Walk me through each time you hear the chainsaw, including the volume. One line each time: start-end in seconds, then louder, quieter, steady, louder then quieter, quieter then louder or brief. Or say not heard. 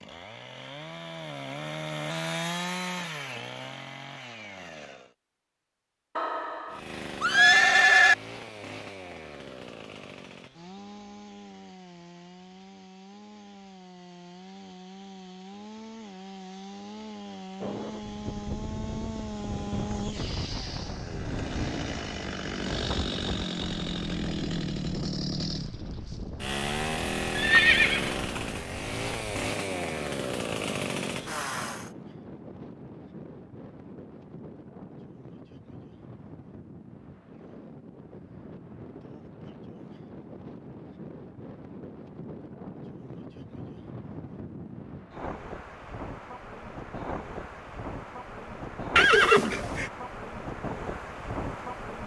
0.0-5.2 louder then quieter
6.7-31.9 louder.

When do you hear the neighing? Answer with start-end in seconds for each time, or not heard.
6.2-8.2, 27.4-28.4, 49.0-49.9.